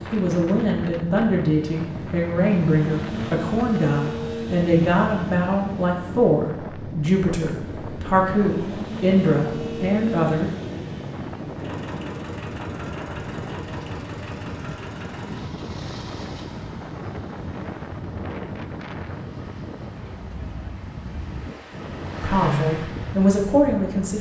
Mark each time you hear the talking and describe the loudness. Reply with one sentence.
The talking can be heard from 0.1 to 10.5 s, at a steady volume; and briefly from 22.2 to 24.1 s.